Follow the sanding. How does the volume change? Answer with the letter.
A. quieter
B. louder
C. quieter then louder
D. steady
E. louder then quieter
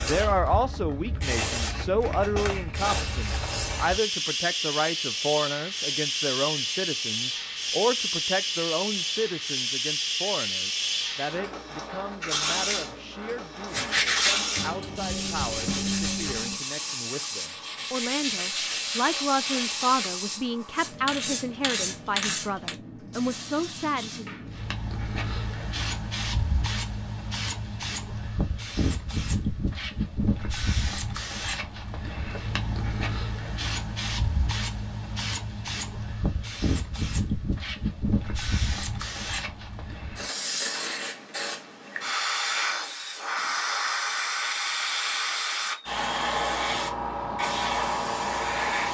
C.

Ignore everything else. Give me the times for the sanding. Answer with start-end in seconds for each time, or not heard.
13.7-20.1.